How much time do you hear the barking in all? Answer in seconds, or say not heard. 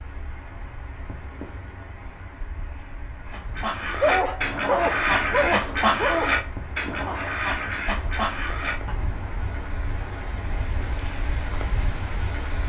2 s.